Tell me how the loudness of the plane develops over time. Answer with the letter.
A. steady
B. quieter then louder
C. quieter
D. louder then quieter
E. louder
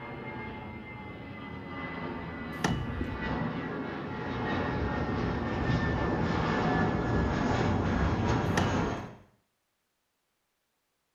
E.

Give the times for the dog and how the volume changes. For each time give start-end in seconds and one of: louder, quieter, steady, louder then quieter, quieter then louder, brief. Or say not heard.
not heard.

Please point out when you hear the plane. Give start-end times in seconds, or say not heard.
0.0-9.1.